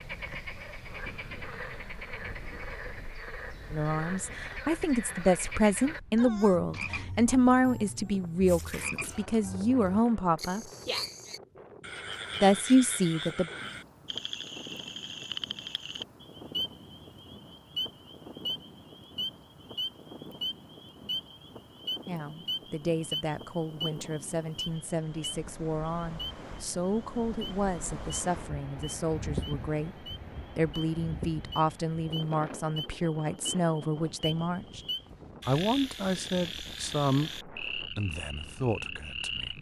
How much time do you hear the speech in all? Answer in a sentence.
You can hear the speech for 25 seconds altogether.